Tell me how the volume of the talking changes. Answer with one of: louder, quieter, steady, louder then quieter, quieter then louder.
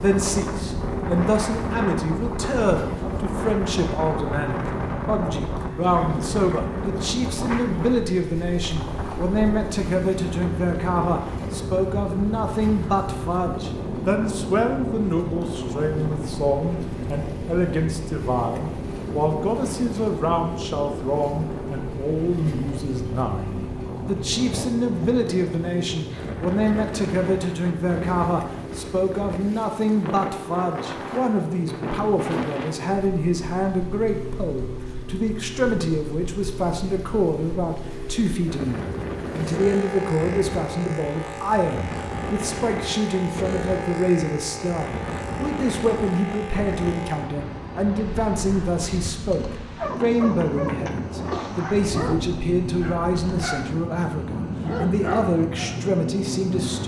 steady.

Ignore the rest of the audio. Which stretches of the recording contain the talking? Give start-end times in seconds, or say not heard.
0.0-56.8.